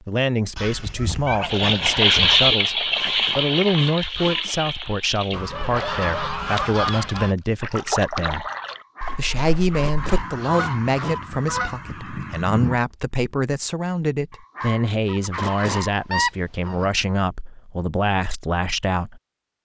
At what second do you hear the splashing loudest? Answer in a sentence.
The loudest moment of the splashing is at 2 seconds.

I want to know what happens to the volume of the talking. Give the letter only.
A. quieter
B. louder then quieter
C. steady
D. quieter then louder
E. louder
C.